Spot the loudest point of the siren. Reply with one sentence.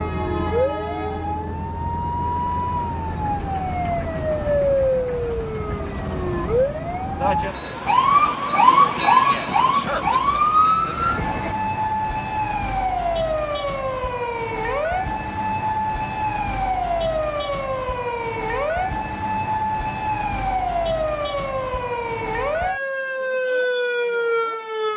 The loudest moment of the siren is at 9 seconds.